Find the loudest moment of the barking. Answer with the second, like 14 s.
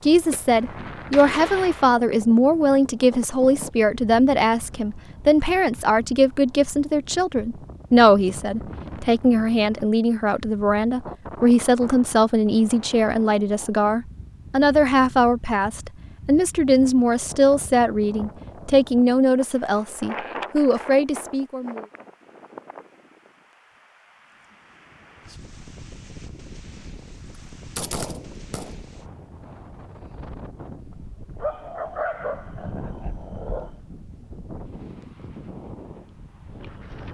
32 s.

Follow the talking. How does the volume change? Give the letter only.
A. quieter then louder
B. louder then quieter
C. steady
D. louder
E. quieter
C.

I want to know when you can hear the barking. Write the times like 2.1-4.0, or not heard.
31.4-33.8.